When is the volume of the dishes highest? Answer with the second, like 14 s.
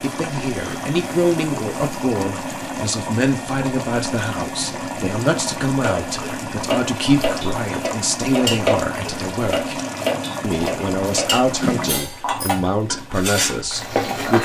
9 s.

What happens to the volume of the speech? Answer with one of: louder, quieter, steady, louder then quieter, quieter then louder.
steady.